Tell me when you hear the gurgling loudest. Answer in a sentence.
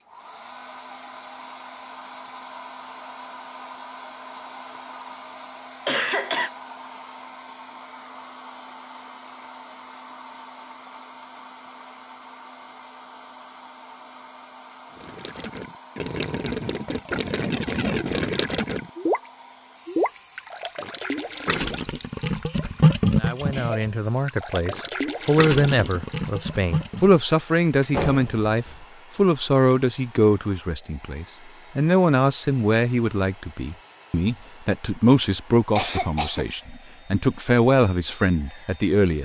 The volume of the gurgling peaks at 23 seconds.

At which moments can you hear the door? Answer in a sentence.
You can hear the door from 27.8 to 28.9 s.